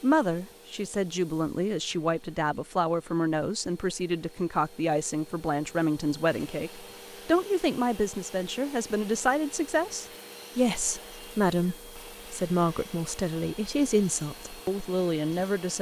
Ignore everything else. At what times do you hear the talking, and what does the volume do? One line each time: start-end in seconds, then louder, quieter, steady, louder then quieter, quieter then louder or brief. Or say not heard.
0.0-15.7 steady.